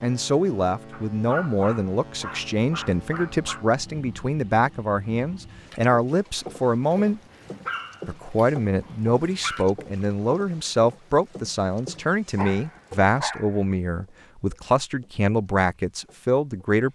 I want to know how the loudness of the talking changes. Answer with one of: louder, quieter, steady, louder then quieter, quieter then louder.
steady.